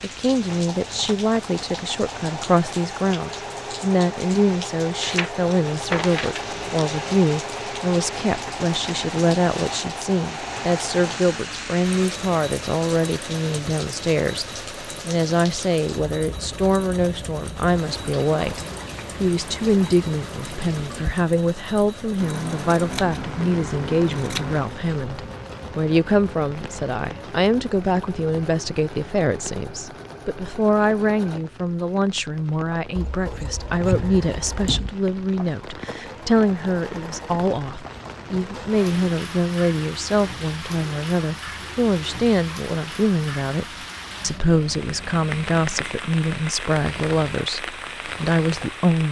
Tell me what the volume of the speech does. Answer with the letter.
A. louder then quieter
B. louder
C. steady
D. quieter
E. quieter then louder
C.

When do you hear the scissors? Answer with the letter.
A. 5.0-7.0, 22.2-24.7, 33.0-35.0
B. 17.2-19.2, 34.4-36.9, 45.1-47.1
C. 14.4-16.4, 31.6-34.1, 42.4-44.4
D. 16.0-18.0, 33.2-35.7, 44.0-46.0
A.